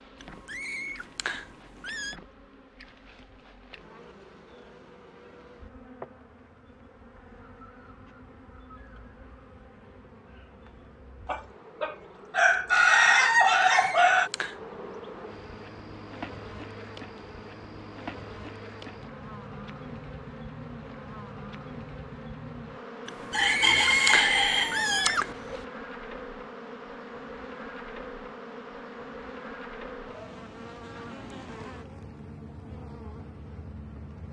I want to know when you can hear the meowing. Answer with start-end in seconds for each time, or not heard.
0.2-2.1, 13.3-14.6, 23.1-25.4.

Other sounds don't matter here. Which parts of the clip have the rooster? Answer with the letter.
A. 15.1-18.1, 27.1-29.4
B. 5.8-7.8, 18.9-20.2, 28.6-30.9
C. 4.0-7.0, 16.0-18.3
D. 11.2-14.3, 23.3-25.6
D.